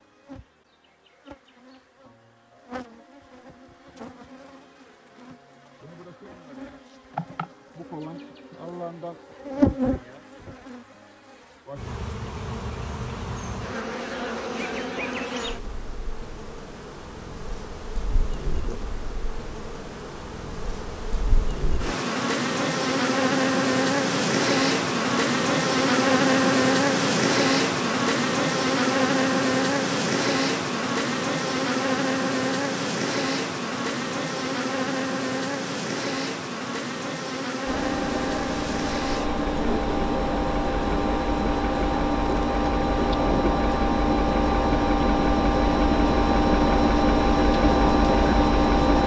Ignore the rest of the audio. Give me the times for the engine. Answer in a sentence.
You can hear the engine from 37.6 to 49.0 s.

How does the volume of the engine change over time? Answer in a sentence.
The loudness of the engine goes up.